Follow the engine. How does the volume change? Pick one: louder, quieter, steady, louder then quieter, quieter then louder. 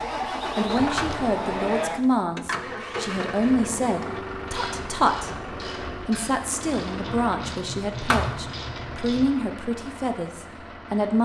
quieter.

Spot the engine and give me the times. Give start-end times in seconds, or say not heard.
0.0-11.2.